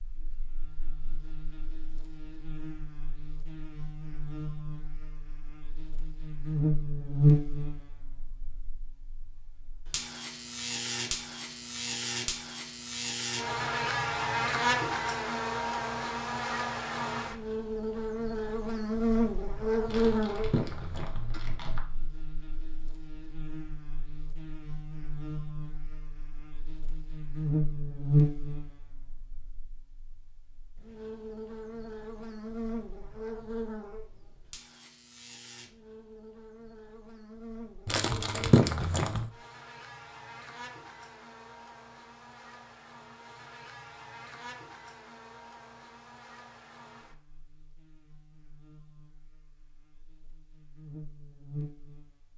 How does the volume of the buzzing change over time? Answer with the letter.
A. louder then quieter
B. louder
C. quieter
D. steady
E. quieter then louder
C.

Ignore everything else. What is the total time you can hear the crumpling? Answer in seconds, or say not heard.
3 s.